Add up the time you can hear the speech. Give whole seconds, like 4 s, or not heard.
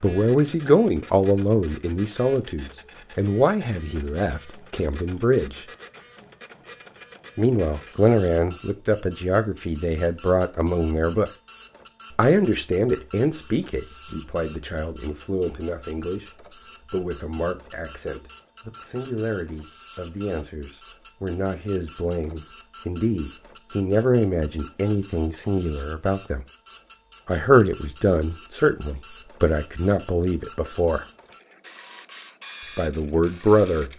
29 s.